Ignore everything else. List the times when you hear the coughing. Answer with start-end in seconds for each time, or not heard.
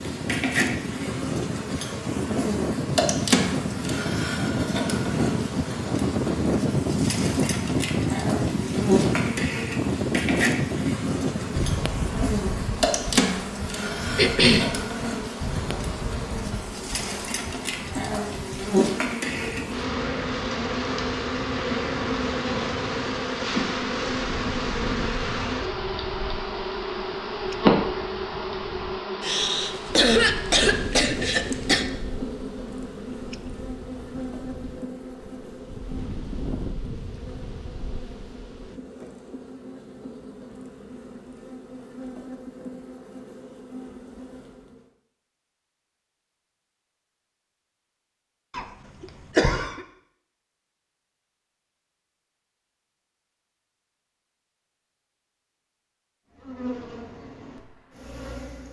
14.2-14.7, 29.2-31.9, 48.5-49.8.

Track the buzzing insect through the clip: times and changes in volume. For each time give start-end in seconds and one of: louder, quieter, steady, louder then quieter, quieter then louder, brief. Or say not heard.
0.0-44.9 quieter
56.3-58.6 brief.